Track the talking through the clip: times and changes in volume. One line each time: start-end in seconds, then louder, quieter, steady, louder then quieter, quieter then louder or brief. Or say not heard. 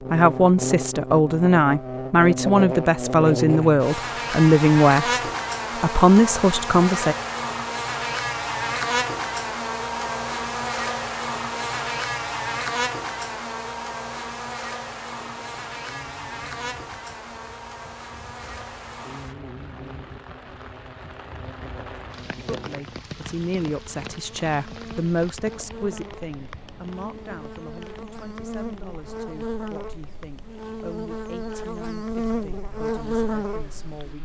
0.1-7.2 steady
22.4-34.1 quieter.